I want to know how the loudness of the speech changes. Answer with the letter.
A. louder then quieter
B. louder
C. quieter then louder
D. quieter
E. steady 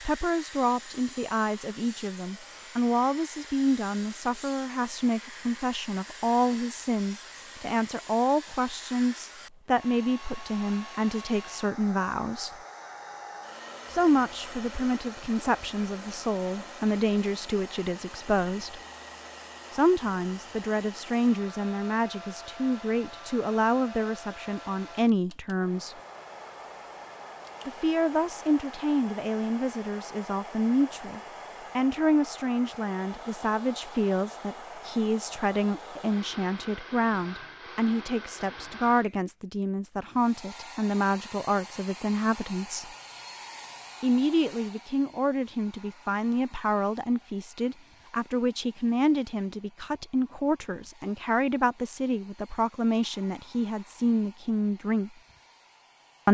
E.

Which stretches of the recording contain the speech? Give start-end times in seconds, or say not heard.
0.1-12.5, 13.9-18.8, 19.7-25.9, 27.6-42.9, 44.0-55.1.